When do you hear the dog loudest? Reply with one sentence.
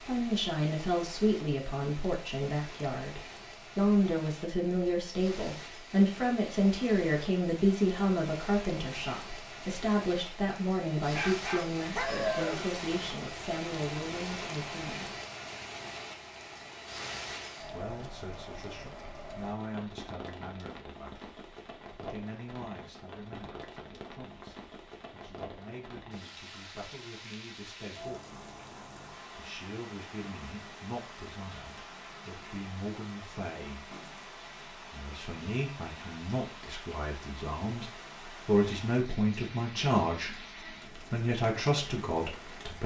The volume of the dog peaks at 12 seconds.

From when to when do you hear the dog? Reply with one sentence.
The dog can be heard from 10.9 to 12.7 s.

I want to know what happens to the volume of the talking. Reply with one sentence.
The volume of the talking goes down, then up.